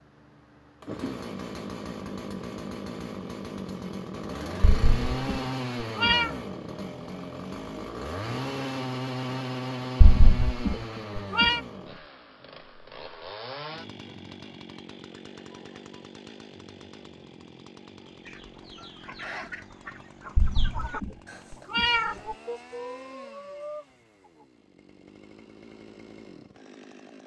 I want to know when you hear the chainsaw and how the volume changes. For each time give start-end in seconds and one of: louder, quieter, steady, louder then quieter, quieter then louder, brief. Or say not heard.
0.0-27.2 quieter.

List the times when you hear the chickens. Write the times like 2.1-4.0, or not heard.
18.1-24.4.